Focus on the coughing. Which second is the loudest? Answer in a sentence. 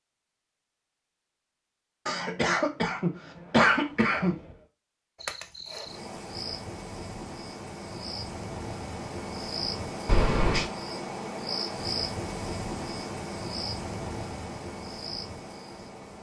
The loudest moment of the coughing is at 4 seconds.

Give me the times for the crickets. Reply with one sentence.
The crickets can be heard from 5.2 to 16.1 s.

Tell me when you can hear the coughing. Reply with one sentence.
The coughing can be heard from 2.0 to 4.4 s and from 10.1 to 10.7 s.